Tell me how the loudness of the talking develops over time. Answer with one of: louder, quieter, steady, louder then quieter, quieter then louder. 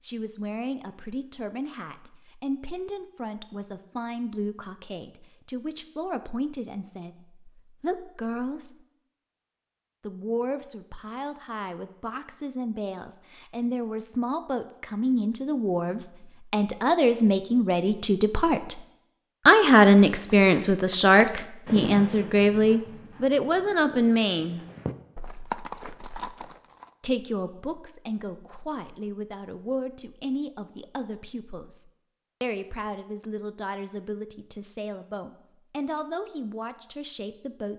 louder then quieter.